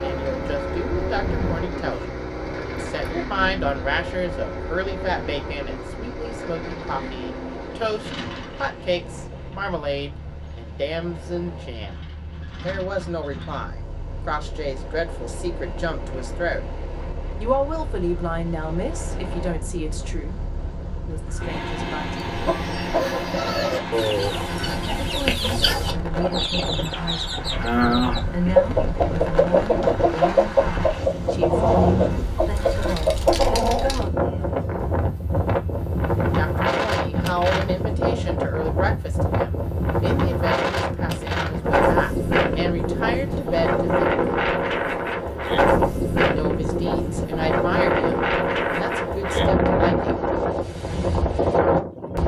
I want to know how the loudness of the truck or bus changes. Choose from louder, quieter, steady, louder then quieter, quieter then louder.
quieter then louder.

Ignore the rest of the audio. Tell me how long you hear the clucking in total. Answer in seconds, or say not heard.
12 s.